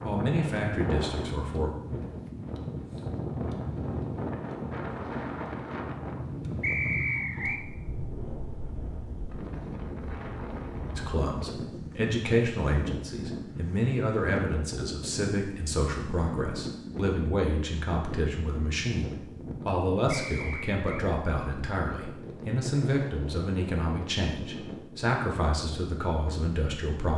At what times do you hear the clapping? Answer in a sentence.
The clapping can't be heard in this clip.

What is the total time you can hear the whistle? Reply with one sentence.
You can hear the whistle for 2 seconds altogether.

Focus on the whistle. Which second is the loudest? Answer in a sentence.
The volume of the whistle peaks at 7 seconds.